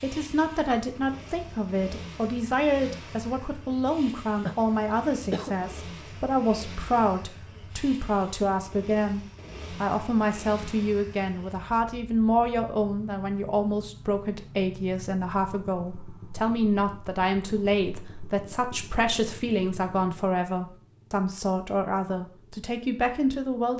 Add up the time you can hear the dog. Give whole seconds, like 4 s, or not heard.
not heard.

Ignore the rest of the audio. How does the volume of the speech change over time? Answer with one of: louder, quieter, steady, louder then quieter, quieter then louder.
steady.